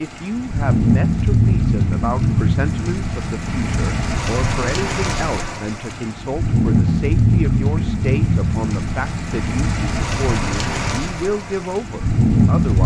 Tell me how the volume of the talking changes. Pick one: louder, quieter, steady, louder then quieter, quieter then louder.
steady.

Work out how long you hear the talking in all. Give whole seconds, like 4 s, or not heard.
13 s.